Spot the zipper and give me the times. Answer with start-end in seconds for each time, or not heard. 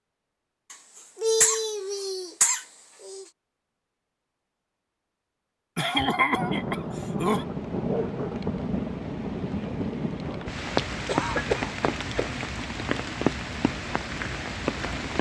not heard.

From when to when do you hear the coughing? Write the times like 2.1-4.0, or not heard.
0.7-3.2, 5.8-7.5, 11.1-12.3.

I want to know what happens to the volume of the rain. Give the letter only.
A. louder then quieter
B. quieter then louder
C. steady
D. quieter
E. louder
C.